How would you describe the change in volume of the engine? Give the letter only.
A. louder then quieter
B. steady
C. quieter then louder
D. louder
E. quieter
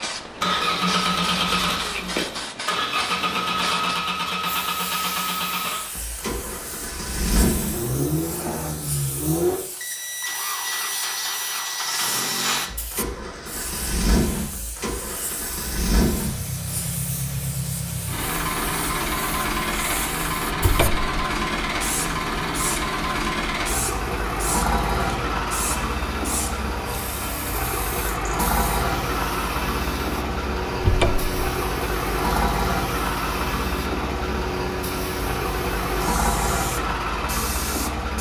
B.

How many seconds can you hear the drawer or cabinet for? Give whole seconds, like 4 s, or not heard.
2 s.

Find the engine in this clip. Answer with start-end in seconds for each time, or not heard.
0.0-38.1.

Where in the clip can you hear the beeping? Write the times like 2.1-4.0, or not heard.
not heard.